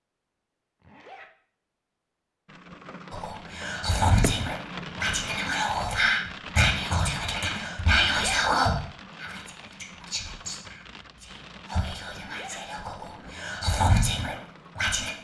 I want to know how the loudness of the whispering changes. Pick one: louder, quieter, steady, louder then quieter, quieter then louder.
quieter then louder.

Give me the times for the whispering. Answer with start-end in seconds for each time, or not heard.
3.1-15.1.